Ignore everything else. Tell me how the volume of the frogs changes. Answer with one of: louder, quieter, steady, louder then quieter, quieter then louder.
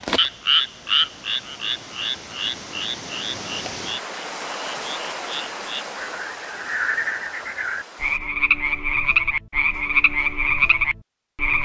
quieter then louder.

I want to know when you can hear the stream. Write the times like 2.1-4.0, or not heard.
0.0-8.2.